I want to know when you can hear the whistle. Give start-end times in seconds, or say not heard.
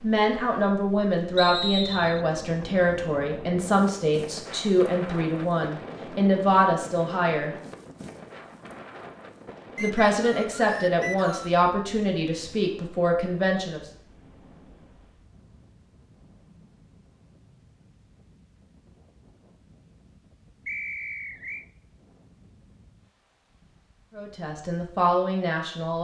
1.4-2.2, 9.8-11.5, 20.6-21.6.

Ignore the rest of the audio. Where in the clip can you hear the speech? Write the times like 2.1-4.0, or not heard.
0.0-7.5, 9.8-13.8, 24.1-25.9.